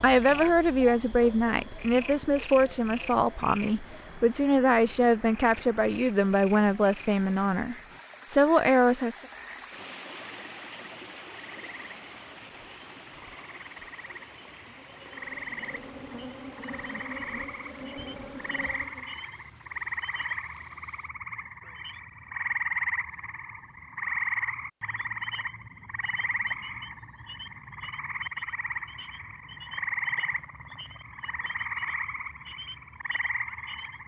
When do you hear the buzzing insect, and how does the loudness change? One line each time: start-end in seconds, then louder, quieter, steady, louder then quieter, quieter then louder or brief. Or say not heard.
14.7-19.1 louder.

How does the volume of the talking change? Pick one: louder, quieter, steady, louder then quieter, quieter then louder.
steady.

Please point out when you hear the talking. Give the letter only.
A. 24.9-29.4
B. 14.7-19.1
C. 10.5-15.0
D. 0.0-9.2
D.